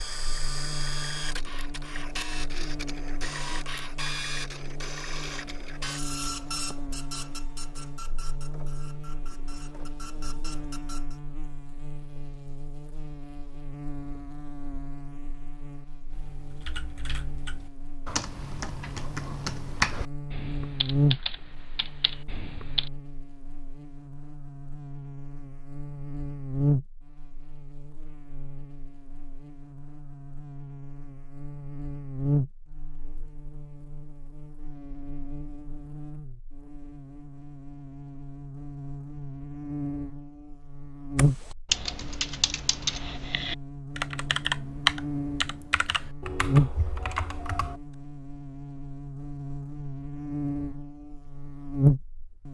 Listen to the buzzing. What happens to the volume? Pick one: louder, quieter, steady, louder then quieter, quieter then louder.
louder.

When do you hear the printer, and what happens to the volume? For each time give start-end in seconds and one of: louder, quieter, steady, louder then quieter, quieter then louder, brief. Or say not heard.
0.0-11.2 quieter.